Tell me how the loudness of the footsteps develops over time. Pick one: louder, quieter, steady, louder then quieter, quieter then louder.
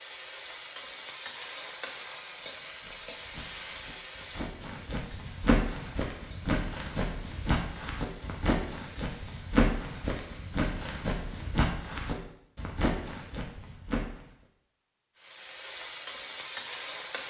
louder.